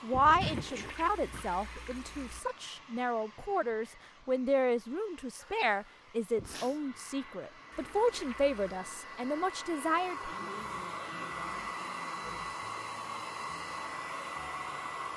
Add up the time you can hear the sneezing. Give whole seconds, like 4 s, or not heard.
5 s.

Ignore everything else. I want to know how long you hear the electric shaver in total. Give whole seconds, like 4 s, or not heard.
not heard.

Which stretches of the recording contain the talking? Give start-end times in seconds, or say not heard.
0.0-10.3.